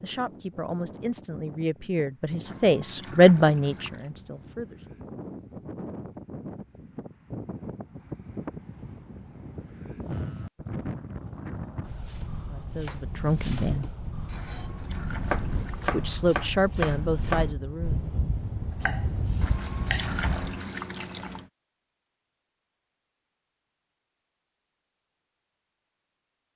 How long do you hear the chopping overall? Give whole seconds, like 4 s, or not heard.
8 s.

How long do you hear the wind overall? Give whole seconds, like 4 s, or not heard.
21 s.